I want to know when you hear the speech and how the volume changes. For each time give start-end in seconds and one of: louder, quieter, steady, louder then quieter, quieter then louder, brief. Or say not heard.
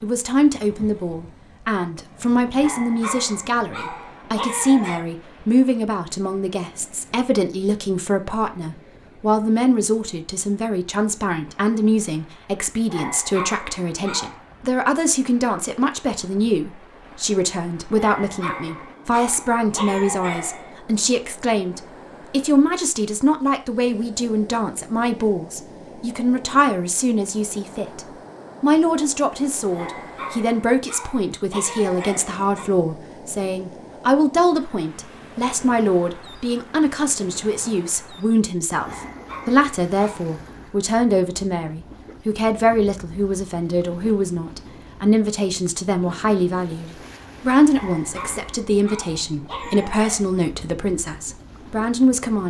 0.0-52.4 steady.